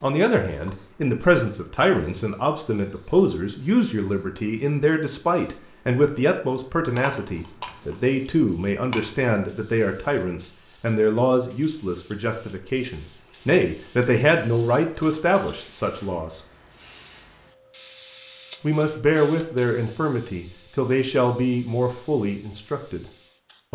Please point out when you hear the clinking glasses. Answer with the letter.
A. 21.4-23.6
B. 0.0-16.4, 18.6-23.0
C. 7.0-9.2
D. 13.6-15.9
C.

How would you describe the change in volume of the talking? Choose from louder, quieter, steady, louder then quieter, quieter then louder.
steady.